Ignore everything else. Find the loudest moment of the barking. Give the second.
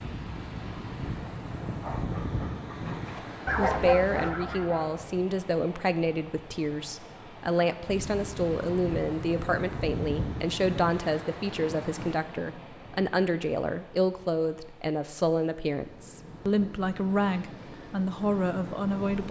4 s.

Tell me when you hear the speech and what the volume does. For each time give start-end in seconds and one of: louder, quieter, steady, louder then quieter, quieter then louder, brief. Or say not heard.
3.5-19.2 steady.